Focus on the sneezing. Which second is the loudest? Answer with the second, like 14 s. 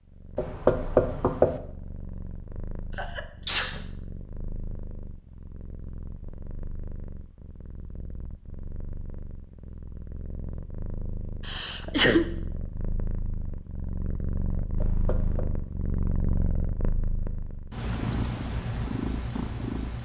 12 s.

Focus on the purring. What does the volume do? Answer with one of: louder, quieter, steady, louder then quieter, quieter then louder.
louder.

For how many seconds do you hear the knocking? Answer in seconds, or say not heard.
2 s.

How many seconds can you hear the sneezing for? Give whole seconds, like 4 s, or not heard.
2 s.